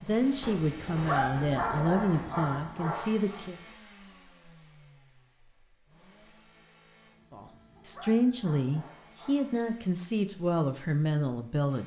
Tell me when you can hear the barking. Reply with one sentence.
You can hear the barking from 0.9 to 3.4 s and from 7.8 to 9.6 s.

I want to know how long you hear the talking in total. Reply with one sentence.
The talking can be heard for 8 seconds in total.